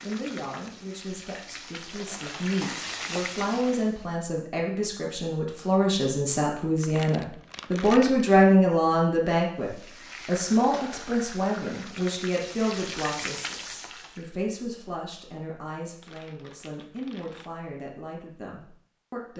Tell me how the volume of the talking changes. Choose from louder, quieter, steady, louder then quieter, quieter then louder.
louder then quieter.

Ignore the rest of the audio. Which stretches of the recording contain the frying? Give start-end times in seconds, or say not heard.
0.0-4.2, 9.6-14.2.